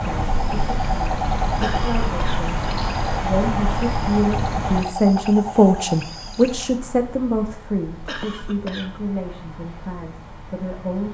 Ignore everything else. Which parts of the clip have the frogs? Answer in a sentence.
You can hear the frogs from 0.0 to 6.8 s.